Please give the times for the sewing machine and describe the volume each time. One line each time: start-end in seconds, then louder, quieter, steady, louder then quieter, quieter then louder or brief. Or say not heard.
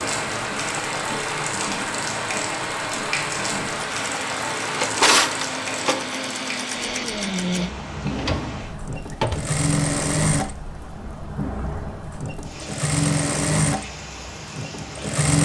0.0-15.4 louder.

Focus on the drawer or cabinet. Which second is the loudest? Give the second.
5 s.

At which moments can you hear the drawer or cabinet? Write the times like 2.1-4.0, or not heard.
4.5-6.0, 8.1-9.6.